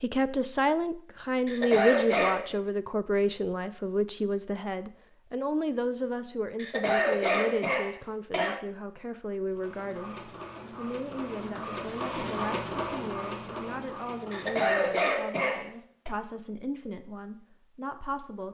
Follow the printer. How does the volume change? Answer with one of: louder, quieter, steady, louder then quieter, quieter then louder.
louder then quieter.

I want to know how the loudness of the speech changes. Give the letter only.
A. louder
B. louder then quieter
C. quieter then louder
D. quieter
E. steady
D.